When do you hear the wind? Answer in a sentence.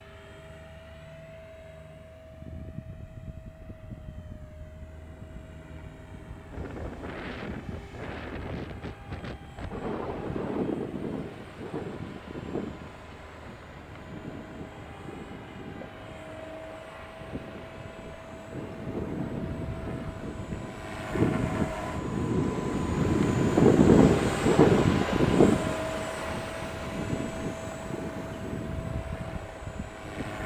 You can hear the wind from 6.5 to 30.4 s.